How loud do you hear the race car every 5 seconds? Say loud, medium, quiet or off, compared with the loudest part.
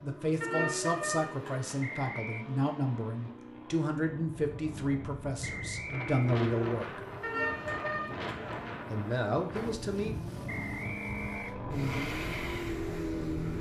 medium, medium, loud.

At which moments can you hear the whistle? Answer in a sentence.
The whistle can be heard from 1.8 to 2.5 s, from 5.4 to 6.4 s and from 10.4 to 11.6 s.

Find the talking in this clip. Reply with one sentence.
The talking can be heard from 0.0 to 7.0 s and from 8.9 to 10.2 s.